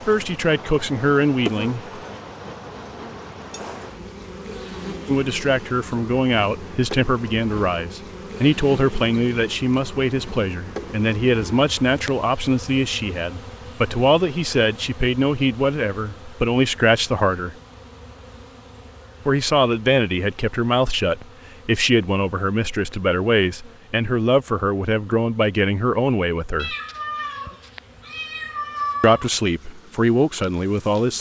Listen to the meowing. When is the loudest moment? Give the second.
29 s.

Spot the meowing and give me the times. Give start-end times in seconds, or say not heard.
26.6-29.3.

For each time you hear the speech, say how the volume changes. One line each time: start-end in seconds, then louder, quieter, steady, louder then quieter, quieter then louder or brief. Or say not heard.
0.0-2.0 brief
5.0-17.6 steady
19.2-26.8 steady
29.0-31.1 brief.